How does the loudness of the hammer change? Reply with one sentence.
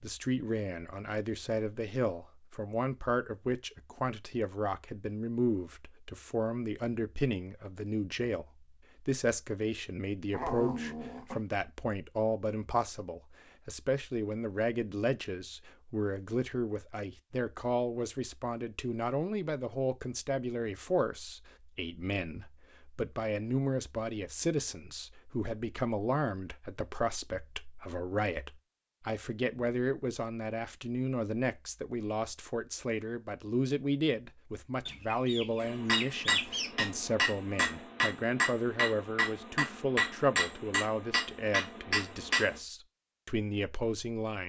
The volume of the hammer stays about the same.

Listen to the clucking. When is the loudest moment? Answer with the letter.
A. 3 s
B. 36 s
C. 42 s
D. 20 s
B.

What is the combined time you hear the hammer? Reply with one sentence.
You can hear the hammer for 7 seconds altogether.